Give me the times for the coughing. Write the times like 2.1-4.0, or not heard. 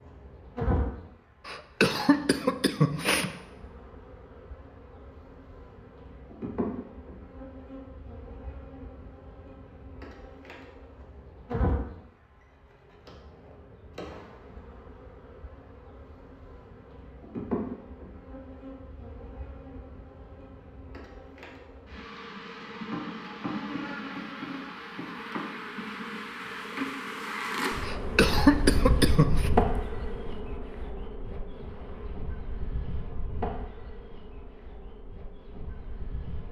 1.4-3.3, 27.8-29.5.